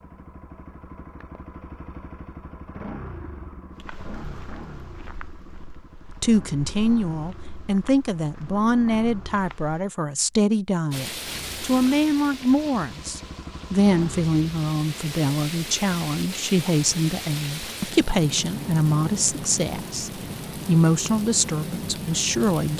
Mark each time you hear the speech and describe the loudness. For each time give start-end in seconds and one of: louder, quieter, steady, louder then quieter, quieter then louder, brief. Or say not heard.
6.2-22.7 steady.